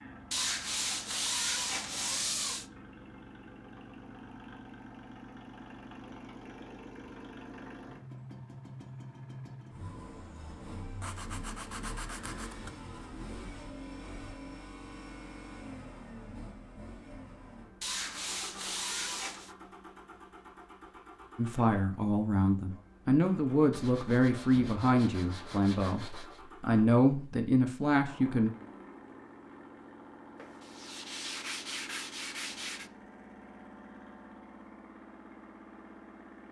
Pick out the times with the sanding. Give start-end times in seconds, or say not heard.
0.3-2.6, 11.0-12.8, 17.8-19.6, 23.7-26.4, 30.4-32.9.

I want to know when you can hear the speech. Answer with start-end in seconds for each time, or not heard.
21.4-28.5.